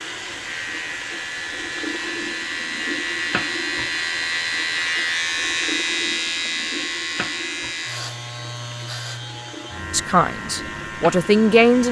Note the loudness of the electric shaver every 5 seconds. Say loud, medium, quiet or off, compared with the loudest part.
loud, loud, medium.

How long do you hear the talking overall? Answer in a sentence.
You can hear the talking for 2 seconds altogether.